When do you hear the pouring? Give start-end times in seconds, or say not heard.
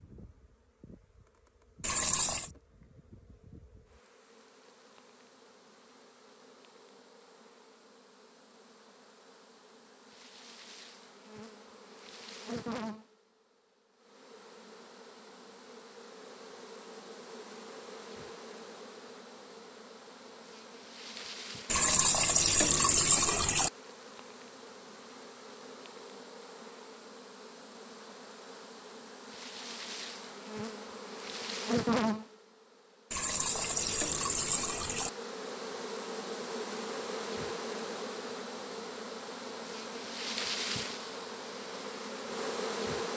1.8-2.5, 21.7-23.7, 33.1-35.1.